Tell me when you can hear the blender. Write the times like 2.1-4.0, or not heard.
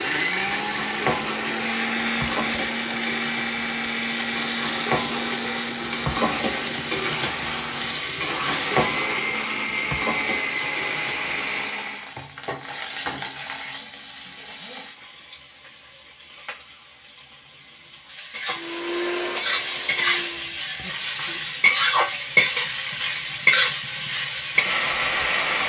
0.0-12.2, 18.5-20.6.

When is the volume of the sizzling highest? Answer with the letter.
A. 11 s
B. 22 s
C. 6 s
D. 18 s
B.